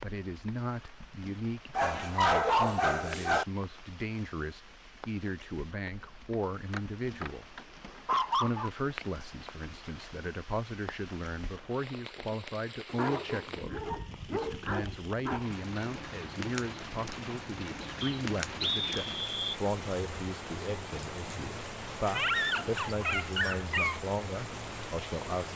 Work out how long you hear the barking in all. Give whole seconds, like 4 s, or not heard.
8 s.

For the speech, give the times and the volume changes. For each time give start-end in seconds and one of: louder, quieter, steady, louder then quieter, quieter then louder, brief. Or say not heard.
0.0-7.5 steady
8.4-25.5 steady.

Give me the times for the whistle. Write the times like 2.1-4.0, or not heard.
18.0-19.6.